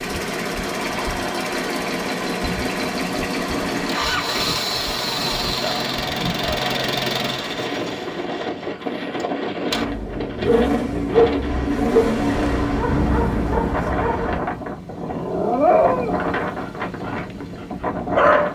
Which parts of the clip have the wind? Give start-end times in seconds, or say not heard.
0.0-18.5.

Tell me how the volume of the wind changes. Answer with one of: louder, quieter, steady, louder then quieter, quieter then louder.
steady.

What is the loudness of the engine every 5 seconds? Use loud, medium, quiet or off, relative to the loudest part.
loud, loud, loud, quiet.